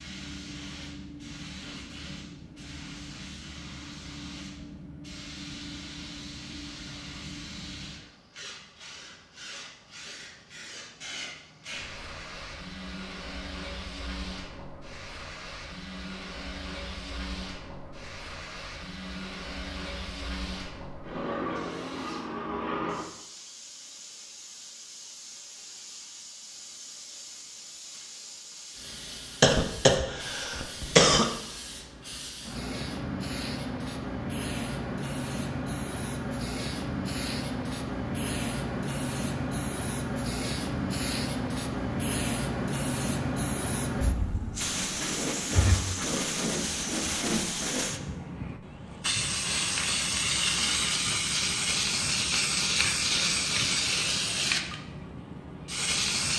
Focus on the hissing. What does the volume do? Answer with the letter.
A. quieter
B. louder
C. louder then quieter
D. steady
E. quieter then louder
B.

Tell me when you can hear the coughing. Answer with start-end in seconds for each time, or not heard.
29.4-31.2.